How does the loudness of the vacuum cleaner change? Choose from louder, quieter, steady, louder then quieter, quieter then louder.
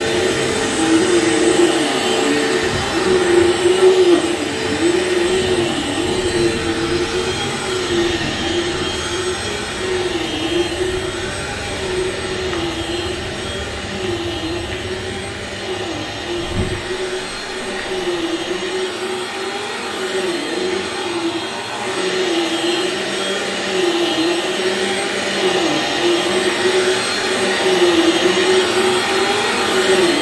quieter then louder.